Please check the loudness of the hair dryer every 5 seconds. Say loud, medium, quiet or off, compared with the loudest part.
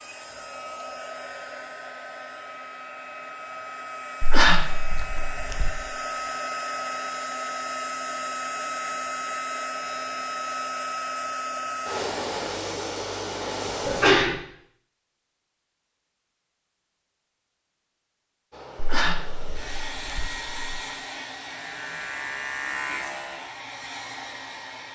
medium, loud, loud, medium, medium.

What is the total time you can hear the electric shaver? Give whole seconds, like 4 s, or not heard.
2 s.